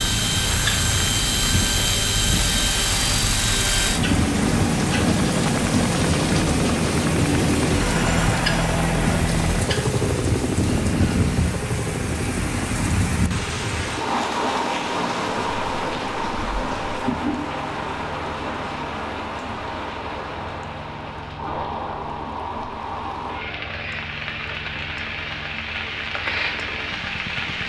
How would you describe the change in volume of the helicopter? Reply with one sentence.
The volume of the helicopter goes down.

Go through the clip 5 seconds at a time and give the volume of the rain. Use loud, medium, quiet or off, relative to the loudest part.
loud, loud, loud, loud, medium, loud.